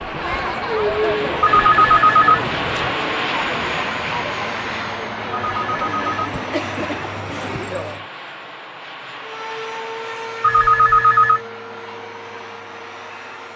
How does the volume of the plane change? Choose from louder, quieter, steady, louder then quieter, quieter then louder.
quieter.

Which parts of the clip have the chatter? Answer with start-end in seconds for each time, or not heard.
0.0-8.1.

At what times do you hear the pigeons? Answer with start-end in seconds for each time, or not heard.
not heard.